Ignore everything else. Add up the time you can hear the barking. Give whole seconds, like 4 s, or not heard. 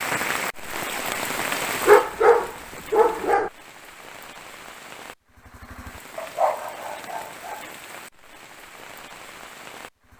3 s.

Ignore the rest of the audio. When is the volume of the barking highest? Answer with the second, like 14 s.
2 s.